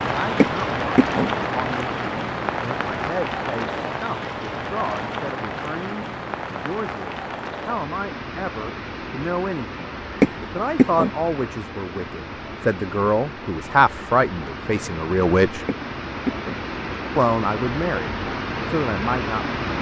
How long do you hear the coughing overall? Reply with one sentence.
The coughing can be heard for 3 seconds in total.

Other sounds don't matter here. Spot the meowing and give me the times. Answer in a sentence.
The meowing can't be heard in this clip.